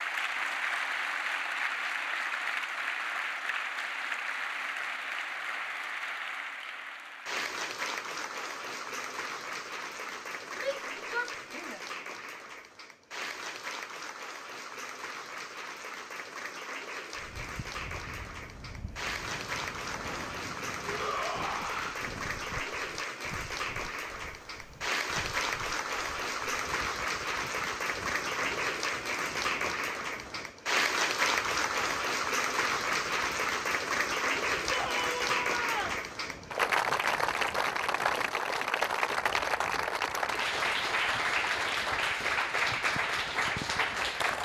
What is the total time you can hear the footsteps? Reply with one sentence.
The footsteps can't be heard in this clip.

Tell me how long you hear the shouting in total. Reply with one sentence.
The shouting can be heard for 4 seconds in total.